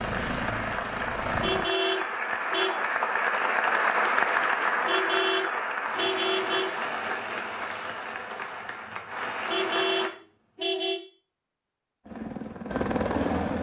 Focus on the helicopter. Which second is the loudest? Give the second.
13 s.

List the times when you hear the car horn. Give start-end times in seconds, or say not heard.
1.4-2.8, 4.8-6.8, 9.4-11.0.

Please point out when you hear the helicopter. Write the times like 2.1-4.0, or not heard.
0.0-1.7, 12.1-13.5.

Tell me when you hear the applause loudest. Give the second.
4 s.